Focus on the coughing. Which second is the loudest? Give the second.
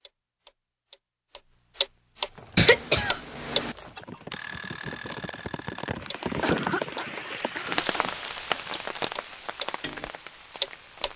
3 s.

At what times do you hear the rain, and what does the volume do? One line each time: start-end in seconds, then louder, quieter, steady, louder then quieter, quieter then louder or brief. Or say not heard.
2.1-11.1 louder then quieter.